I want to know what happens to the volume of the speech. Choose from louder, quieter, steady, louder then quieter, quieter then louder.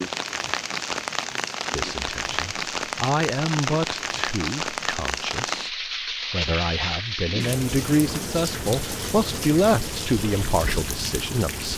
quieter then louder.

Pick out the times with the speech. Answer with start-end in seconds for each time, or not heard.
1.7-11.7.